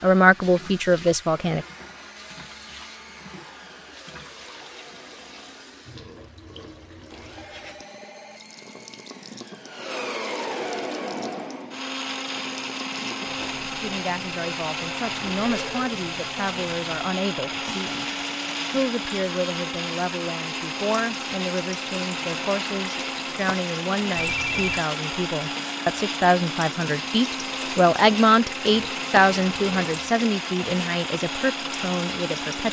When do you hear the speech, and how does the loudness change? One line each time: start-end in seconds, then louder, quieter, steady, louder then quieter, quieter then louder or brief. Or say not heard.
0.0-1.6 brief
13.6-18.1 steady
18.7-32.6 louder then quieter.